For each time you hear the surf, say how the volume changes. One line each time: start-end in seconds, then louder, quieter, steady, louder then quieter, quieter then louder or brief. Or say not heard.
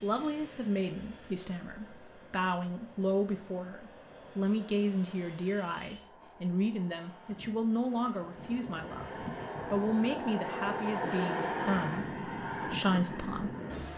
not heard.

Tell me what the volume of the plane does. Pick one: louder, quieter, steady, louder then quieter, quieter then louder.
louder.